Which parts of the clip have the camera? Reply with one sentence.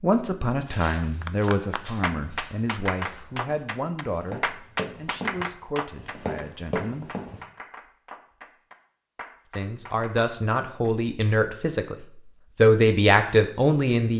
You can't hear the camera here.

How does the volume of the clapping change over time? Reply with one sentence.
The loudness of the clapping goes down.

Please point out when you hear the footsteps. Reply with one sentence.
The footsteps can be heard from 0.7 to 7.4 s.